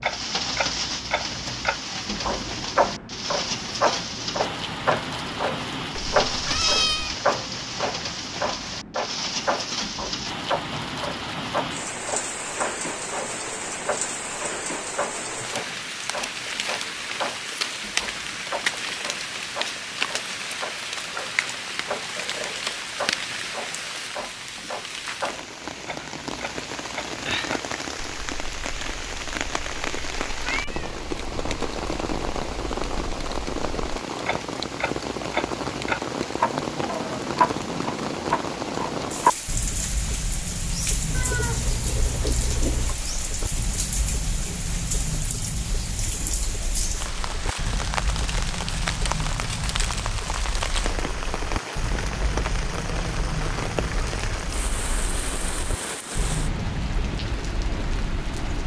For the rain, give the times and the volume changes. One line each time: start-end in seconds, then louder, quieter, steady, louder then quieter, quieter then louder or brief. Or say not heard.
0.0-58.6 steady.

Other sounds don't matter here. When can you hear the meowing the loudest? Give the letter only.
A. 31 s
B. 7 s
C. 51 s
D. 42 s
B.